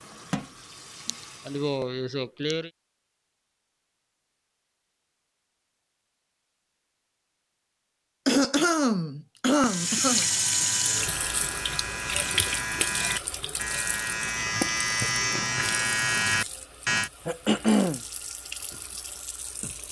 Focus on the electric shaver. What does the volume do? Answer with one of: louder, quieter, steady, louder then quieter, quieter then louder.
louder.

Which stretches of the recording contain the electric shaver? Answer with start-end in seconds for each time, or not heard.
9.5-17.1.